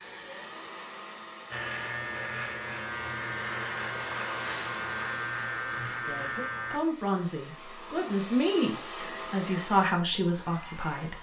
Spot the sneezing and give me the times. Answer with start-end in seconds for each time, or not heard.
5.8-6.5.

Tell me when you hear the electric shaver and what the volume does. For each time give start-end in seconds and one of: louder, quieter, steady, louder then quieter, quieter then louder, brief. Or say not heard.
1.5-6.8 steady.